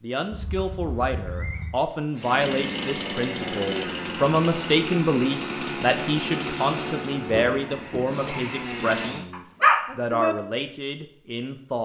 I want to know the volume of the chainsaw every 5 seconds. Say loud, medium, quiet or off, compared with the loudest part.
loud, loud, off.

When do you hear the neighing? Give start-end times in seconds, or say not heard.
0.3-1.8, 7.3-8.7.